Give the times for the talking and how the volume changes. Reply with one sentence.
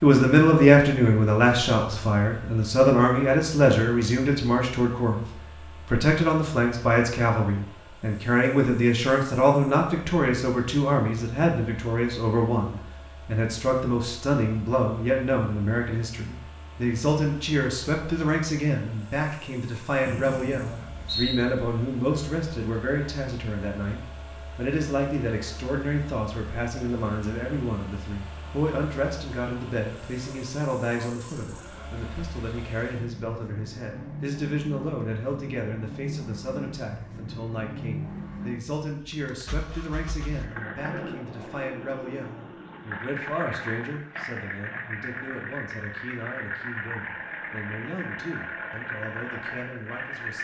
You can hear the talking from 0.0 to 50.3 s, getting quieter.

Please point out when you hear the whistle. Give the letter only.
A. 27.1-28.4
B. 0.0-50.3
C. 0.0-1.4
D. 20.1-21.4
D.